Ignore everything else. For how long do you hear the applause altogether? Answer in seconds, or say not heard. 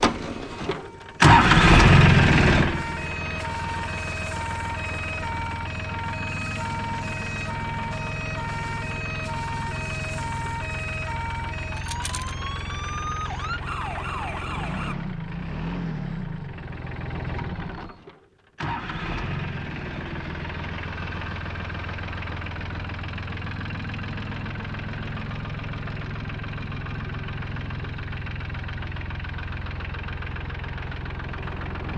not heard.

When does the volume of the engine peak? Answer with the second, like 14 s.
2 s.